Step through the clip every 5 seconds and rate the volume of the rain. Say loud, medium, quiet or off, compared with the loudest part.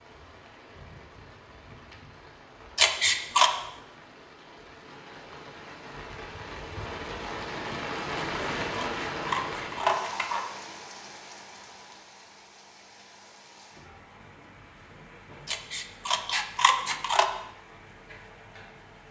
quiet, loud, medium, quiet.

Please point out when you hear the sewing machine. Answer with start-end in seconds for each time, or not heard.
not heard.